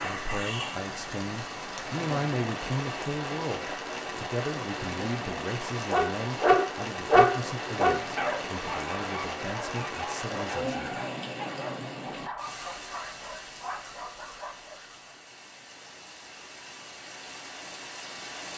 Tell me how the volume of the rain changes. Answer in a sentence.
The volume of the rain goes down.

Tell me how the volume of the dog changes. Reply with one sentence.
The loudness of the dog goes down.